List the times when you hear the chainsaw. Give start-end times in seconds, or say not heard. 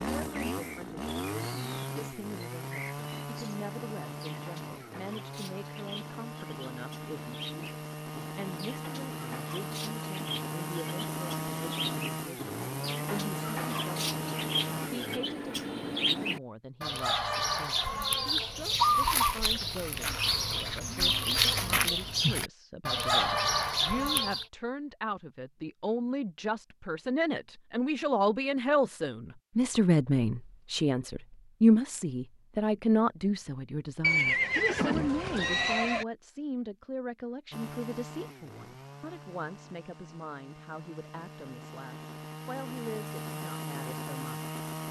0.0-15.2, 37.5-44.8.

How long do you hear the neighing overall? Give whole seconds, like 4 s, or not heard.
2 s.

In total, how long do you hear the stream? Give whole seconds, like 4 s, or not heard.
not heard.